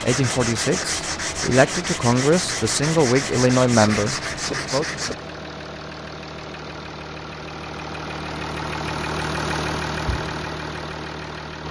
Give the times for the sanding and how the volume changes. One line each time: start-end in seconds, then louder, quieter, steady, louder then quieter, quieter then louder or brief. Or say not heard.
0.0-5.2 steady.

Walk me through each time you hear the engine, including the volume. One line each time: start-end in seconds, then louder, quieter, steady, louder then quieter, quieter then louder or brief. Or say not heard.
0.0-11.6 louder.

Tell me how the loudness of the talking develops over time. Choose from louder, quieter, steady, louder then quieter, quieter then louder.
louder then quieter.